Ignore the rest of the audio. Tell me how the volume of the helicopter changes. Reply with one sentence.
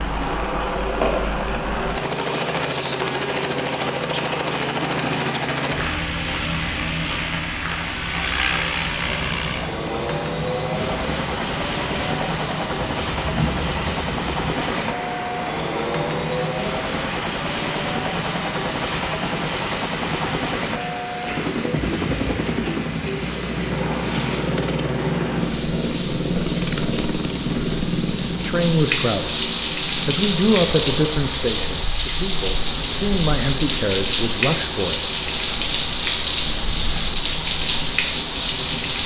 The loudness of the helicopter goes down.